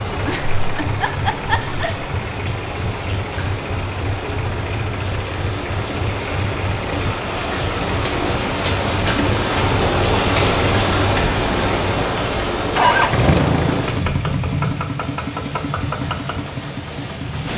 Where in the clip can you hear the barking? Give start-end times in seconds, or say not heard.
not heard.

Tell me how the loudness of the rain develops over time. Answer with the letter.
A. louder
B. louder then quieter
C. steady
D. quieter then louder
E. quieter
B.